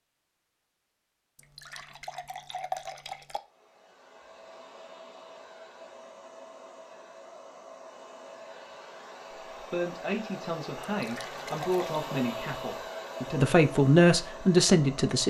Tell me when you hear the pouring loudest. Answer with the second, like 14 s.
3 s.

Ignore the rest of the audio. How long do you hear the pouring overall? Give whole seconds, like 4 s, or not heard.
3 s.